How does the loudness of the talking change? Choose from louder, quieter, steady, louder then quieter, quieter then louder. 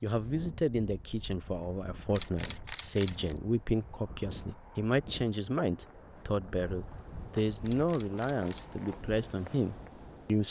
steady.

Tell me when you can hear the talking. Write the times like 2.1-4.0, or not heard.
0.0-10.4.